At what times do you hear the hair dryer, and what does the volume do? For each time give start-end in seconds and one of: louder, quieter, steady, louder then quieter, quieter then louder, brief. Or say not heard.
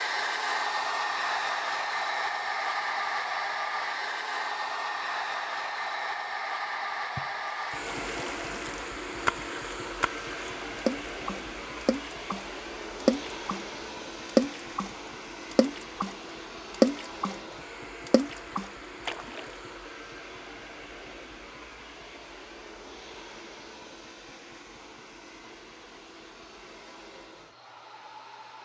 0.0-28.5 quieter.